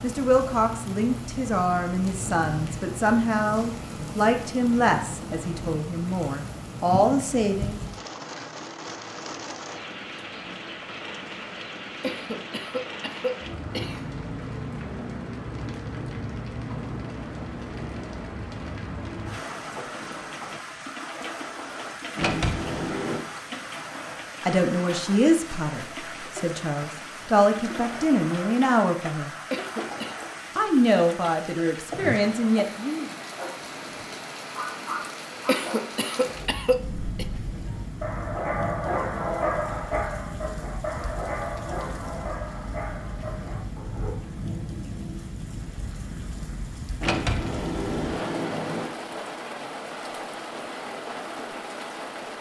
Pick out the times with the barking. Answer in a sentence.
You can hear the barking from 33.4 to 44.1 s.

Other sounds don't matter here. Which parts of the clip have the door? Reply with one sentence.
You can hear the door from 22.1 to 23.2 s and from 47.0 to 49.0 s.